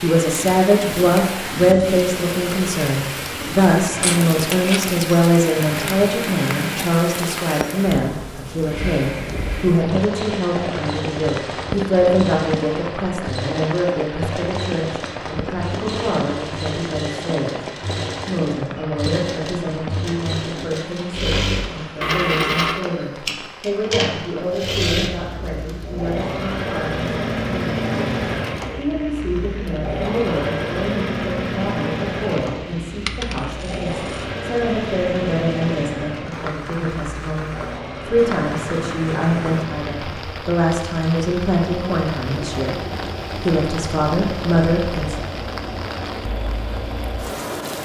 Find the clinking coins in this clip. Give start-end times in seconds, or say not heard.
4.0-5.0, 22.0-22.8, 33.0-34.2.